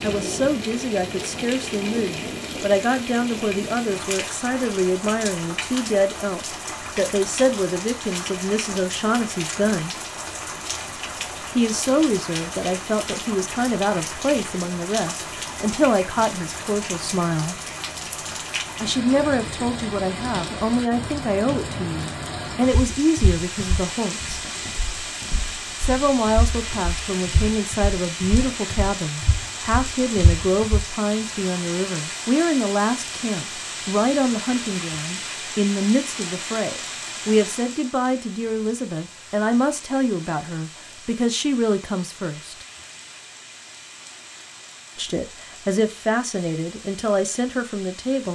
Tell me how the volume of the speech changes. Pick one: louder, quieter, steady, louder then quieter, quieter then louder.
steady.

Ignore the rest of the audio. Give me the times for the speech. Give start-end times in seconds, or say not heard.
0.0-9.9, 11.6-17.6, 18.8-24.4, 25.8-42.6, 45.0-48.2.